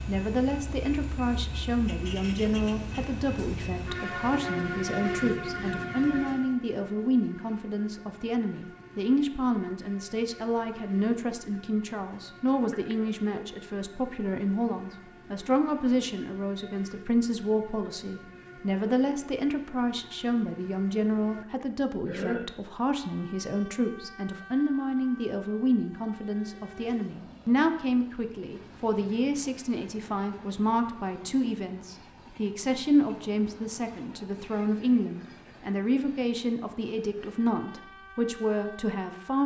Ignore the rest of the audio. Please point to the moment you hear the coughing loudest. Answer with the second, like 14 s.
22 s.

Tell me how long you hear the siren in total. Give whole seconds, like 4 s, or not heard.
not heard.